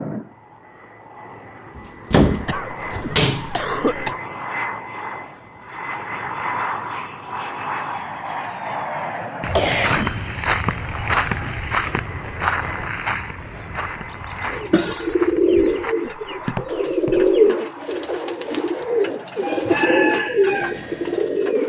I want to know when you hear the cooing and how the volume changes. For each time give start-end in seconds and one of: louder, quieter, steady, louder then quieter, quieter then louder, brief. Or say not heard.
14.4-21.6 steady.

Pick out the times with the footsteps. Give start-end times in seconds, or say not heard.
9.4-17.4.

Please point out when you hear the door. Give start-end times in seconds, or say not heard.
1.8-3.5.